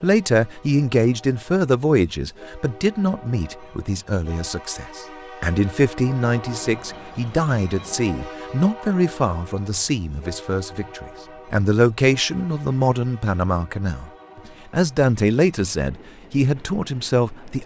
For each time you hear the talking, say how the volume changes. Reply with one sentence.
You can hear the talking from 0.0 to 17.6 s, at a steady volume.